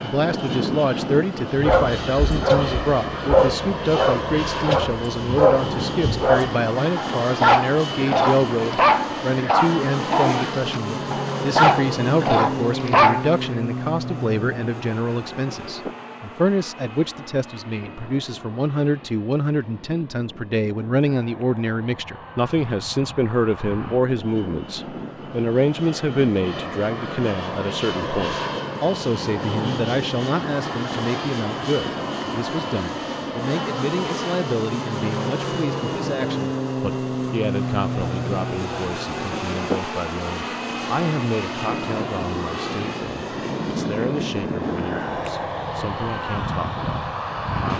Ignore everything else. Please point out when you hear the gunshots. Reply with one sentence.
The gunshots can't be heard in this clip.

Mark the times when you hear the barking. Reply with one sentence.
You can hear the barking from 1.6 to 13.4 s.